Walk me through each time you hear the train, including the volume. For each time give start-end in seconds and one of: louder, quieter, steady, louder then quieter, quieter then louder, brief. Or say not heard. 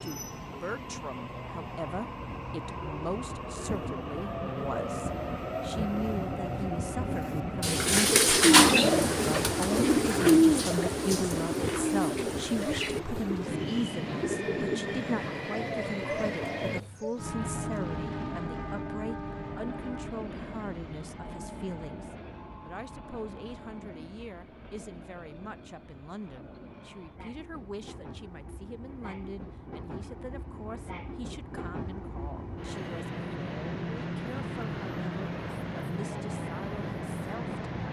0.0-37.8 quieter then louder.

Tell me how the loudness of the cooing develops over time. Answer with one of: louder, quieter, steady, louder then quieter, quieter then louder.
quieter.